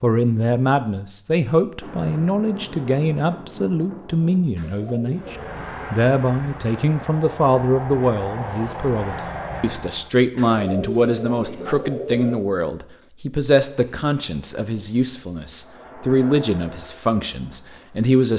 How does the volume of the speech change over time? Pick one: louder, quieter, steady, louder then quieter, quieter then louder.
steady.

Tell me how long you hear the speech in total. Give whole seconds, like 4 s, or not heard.
18 s.